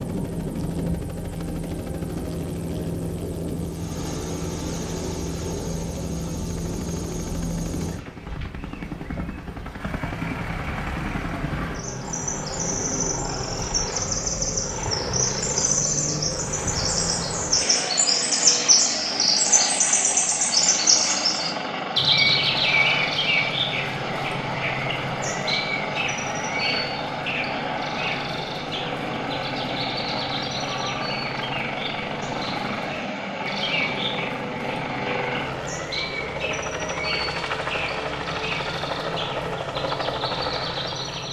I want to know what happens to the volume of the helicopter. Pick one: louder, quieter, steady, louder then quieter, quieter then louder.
steady.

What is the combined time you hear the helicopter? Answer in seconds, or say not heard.
41 s.